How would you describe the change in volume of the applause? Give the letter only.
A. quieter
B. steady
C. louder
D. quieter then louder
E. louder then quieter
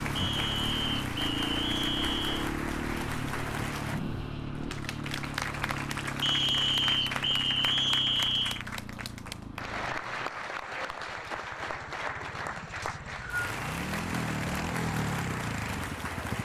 B.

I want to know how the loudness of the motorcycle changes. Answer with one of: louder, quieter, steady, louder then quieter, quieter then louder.
quieter then louder.